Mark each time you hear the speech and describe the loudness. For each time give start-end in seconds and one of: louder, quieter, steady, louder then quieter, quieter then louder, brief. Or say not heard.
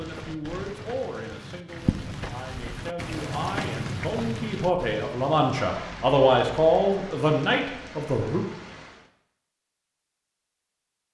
0.0-8.4 louder.